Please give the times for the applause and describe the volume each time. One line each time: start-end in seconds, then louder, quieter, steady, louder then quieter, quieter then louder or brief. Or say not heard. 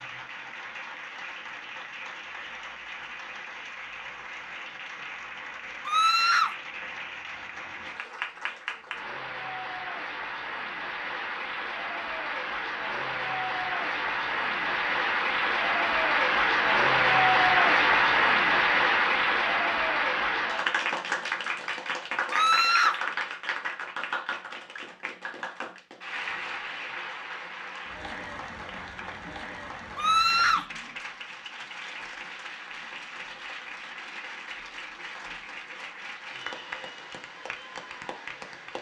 0.0-38.7 louder then quieter.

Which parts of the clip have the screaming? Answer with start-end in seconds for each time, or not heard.
5.8-6.5, 22.3-23.0, 29.9-30.6.